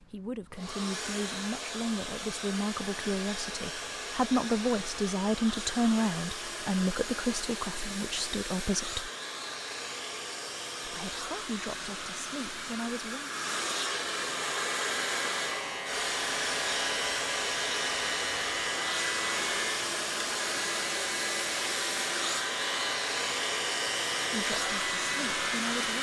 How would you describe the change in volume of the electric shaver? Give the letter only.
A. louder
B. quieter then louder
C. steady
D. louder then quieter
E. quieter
C.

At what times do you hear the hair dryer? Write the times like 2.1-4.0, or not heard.
0.0-25.9.